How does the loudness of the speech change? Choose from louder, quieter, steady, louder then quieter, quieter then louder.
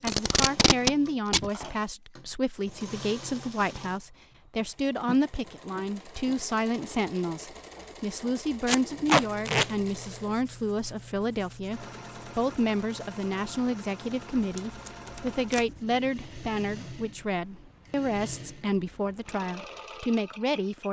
steady.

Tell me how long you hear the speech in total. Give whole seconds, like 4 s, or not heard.
21 s.